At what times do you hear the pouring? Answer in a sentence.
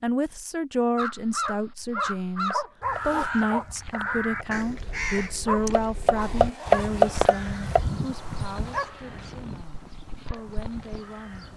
You can't hear the pouring here.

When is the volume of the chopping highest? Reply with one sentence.
The loudest moment of the chopping is at 7 seconds.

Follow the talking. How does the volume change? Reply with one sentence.
The loudness of the talking goes down.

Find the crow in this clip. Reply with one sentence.
The crow can be heard from 0.9 to 11.5 s.